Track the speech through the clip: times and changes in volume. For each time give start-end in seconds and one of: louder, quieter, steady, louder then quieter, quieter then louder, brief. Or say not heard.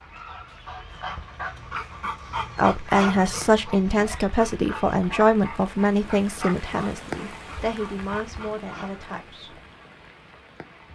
2.5-9.6 quieter.